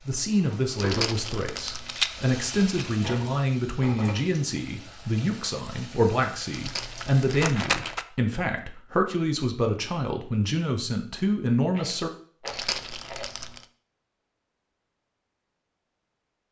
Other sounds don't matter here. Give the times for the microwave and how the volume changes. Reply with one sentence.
The microwave can't be heard in this clip.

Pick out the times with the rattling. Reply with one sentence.
The rattling can be heard from 1.9 to 3.0 s, from 6.7 to 8.1 s and from 11.7 to 13.3 s.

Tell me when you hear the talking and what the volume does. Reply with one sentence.
The talking can be heard from 0.1 to 12.1 s, at a steady volume.